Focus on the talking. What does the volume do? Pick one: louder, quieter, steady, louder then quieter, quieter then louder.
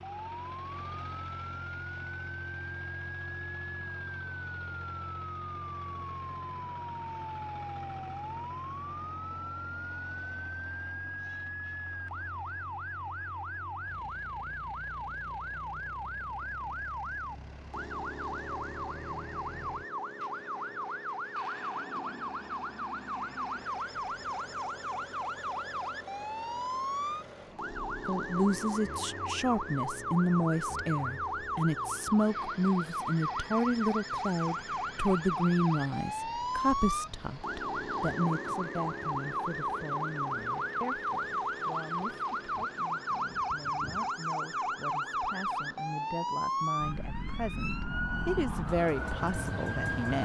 quieter then louder.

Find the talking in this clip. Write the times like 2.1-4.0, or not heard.
28.1-50.2.